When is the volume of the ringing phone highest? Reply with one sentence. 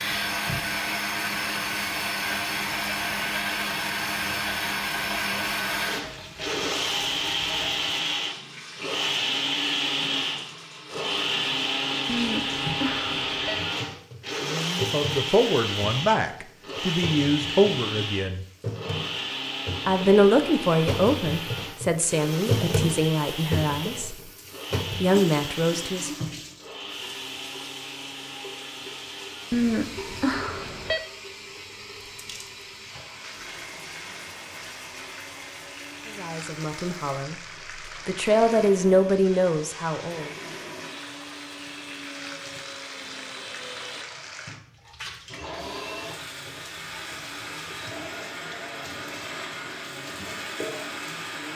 The loudest moment of the ringing phone is at 30 seconds.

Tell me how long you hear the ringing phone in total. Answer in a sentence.
The ringing phone can be heard for 3 seconds in total.